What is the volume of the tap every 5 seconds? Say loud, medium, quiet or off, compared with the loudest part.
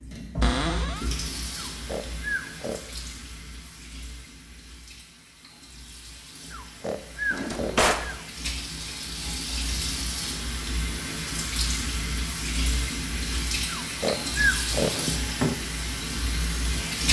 medium, medium, loud, loud.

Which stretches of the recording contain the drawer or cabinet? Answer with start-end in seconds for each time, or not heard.
0.4-1.1, 7.3-8.1, 14.8-15.6.